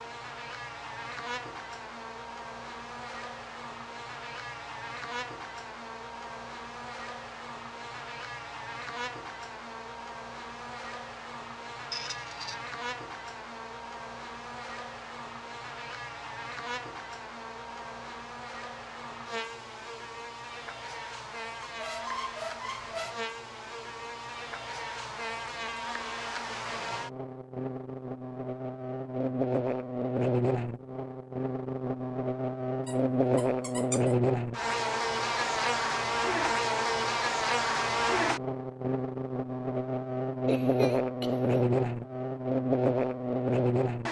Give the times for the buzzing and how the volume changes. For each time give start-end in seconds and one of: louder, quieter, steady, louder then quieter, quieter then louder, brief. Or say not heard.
0.0-44.0 louder.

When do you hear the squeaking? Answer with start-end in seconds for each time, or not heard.
11.9-12.6, 21.6-23.2, 32.9-34.1.